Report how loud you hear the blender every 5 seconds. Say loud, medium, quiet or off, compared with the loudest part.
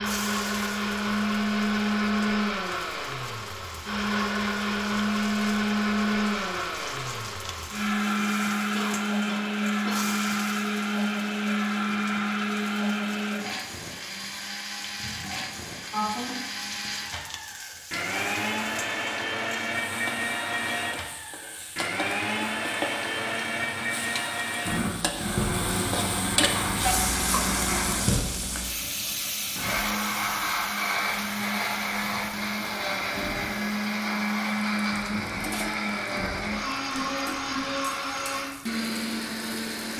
loud, loud, loud, medium, loud, loud, loud, loud.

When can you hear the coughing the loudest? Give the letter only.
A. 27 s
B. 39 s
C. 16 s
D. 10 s
C.